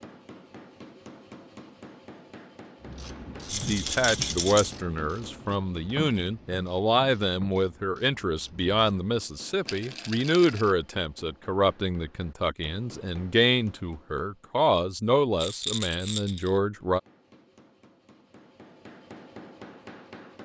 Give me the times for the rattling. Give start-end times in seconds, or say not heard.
3.5-4.8, 9.7-10.8, 15.3-16.6.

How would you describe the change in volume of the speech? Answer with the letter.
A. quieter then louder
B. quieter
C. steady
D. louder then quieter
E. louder
C.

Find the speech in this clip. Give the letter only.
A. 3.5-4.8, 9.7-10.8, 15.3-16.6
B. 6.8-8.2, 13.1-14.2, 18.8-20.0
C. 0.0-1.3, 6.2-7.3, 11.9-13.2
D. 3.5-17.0
D.